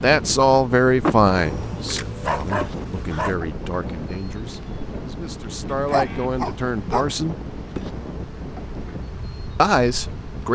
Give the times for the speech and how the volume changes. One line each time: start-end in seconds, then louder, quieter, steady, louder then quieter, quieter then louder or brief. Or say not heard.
0.0-7.3 quieter then louder
9.6-10.5 brief.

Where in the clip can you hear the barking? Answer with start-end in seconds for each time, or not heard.
1.4-3.4, 5.7-7.2.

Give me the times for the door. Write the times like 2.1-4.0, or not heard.
1.0-1.9.